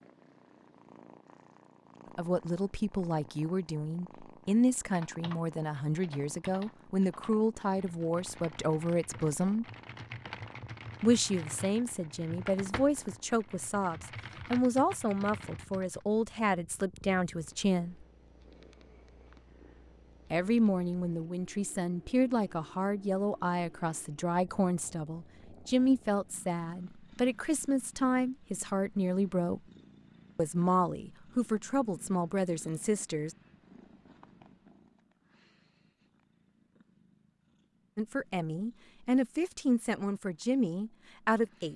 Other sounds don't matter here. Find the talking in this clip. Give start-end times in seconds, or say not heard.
2.1-9.7, 11.0-18.1, 20.3-29.6, 30.4-33.4, 38.0-41.7.